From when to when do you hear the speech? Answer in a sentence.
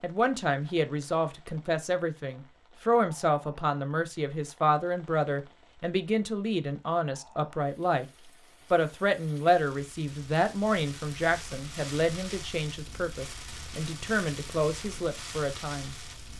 The speech can be heard from 0.0 to 8.1 s and from 8.7 to 16.3 s.